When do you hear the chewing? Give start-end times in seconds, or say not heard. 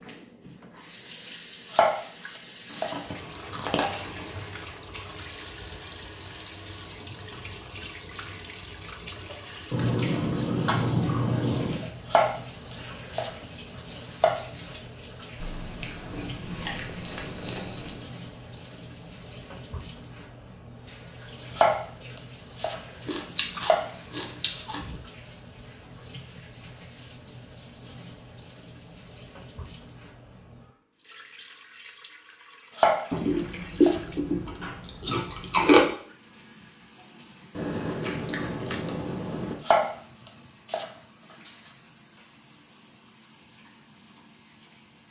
2.7-4.3, 9.7-11.8, 15.4-18.1, 23.1-25.0, 33.1-35.9, 37.5-39.5.